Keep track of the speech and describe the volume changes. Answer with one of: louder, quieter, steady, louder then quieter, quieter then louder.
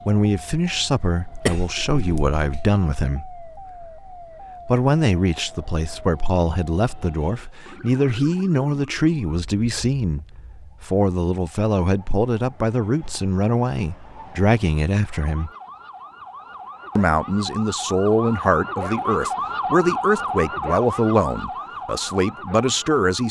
steady.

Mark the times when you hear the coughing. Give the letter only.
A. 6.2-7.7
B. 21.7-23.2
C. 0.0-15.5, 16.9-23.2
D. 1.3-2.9
D.